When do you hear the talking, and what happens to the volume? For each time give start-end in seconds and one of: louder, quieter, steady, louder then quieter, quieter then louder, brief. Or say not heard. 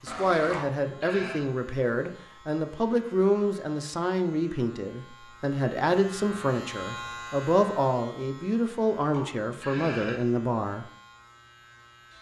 0.0-10.8 steady.